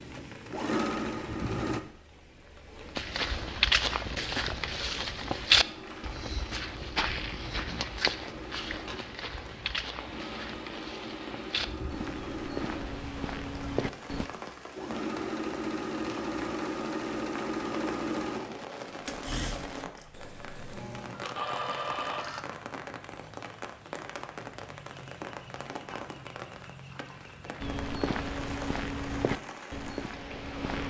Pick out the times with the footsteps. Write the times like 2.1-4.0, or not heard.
3.0-14.3, 27.6-30.8.